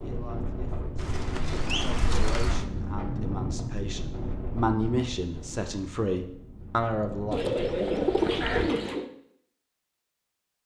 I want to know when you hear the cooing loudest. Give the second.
8 s.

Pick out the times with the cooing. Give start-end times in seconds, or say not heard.
0.9-2.6, 7.3-9.1.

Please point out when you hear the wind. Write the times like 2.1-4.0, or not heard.
0.0-8.7.